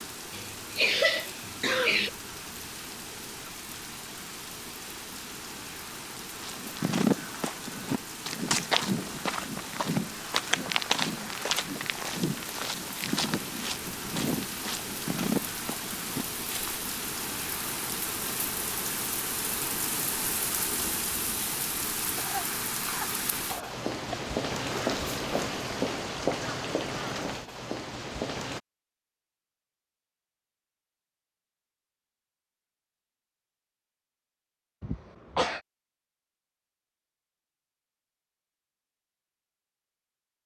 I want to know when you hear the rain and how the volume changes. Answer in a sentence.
The rain can be heard from 0.0 to 28.6 s, getting louder.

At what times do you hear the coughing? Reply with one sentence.
You can hear the coughing from 0.3 to 2.1 s, from 22.1 to 24.1 s and from 34.8 to 35.6 s.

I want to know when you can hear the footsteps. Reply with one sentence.
The footsteps can be heard from 6.4 to 16.8 s.